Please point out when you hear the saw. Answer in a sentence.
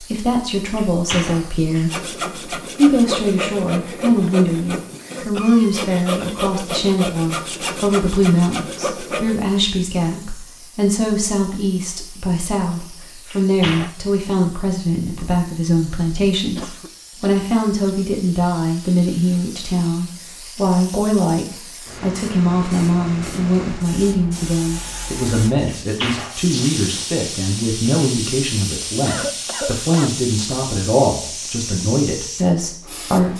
The saw can be heard from 1.9 to 9.4 s.